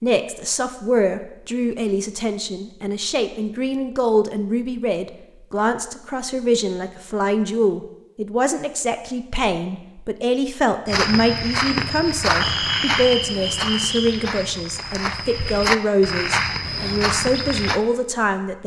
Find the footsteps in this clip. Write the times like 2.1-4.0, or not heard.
10.8-17.8.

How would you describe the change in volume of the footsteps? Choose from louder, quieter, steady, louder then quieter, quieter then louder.
quieter then louder.